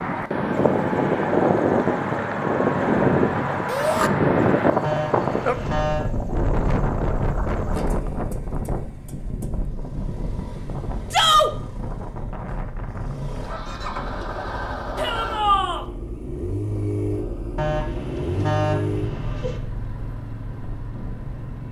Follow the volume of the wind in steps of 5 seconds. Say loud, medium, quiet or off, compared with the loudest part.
loud, medium, quiet, quiet, quiet.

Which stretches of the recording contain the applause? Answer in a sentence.
The applause can't be heard in this clip.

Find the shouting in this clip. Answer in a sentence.
You can hear the shouting from 3.6 to 4.1 s, from 11.1 to 11.5 s and from 14.9 to 15.8 s.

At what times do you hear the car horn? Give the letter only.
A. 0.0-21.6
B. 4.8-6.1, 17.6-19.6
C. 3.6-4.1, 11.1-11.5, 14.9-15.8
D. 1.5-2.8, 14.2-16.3
B.